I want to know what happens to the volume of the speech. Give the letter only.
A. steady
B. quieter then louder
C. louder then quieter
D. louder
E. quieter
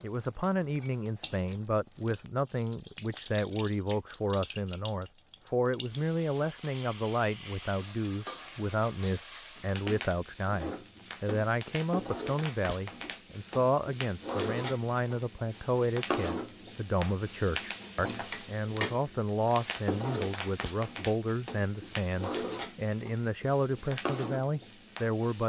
A.